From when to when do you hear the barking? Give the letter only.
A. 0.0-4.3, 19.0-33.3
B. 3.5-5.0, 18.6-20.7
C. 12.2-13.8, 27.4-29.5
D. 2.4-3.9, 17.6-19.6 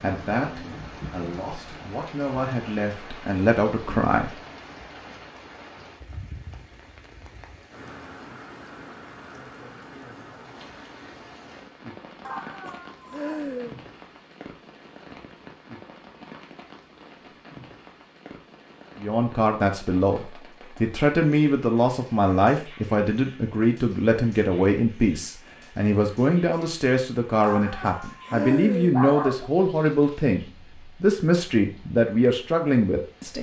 C.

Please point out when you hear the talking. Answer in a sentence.
You can hear the talking from 0.0 to 4.3 s and from 19.0 to 33.3 s.